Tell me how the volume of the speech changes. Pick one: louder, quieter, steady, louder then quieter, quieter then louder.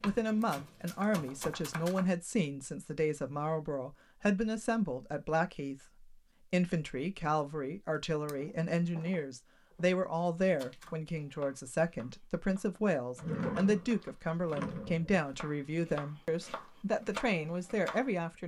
steady.